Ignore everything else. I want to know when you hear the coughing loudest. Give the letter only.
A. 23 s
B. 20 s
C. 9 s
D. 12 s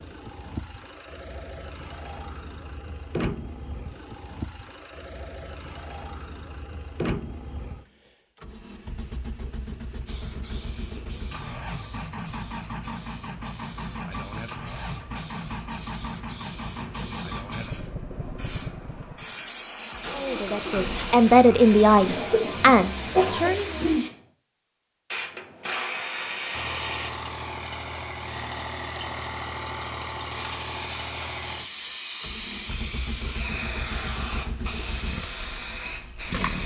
A.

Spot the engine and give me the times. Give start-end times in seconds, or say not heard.
0.0-24.0, 26.5-36.6.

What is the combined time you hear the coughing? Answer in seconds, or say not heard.
2 s.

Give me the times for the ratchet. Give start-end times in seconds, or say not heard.
25.1-27.1.